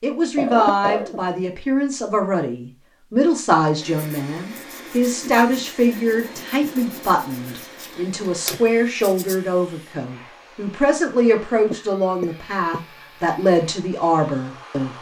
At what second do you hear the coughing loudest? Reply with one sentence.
The loudest moment of the coughing is at 1 second.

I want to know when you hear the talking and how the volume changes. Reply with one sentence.
You can hear the talking from 0.0 to 14.9 s, at a steady volume.